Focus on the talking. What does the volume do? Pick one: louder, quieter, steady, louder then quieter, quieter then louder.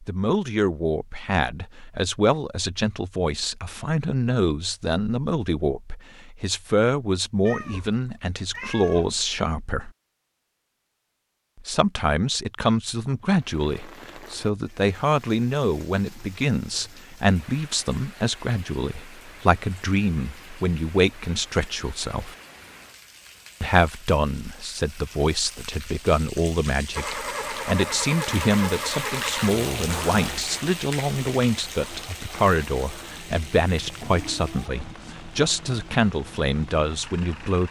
steady.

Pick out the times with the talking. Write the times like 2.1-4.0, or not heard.
0.0-9.9, 11.6-22.4, 23.6-37.6.